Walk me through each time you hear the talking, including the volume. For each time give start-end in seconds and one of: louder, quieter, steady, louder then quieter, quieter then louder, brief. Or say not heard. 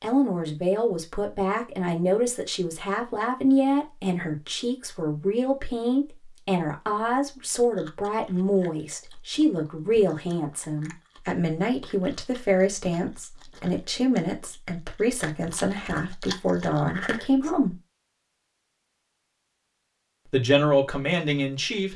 0.0-17.8 steady
20.3-21.9 brief.